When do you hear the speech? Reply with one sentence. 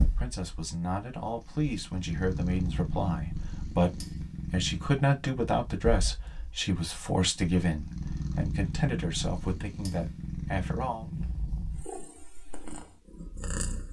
The speech can be heard from 0.0 to 11.1 s.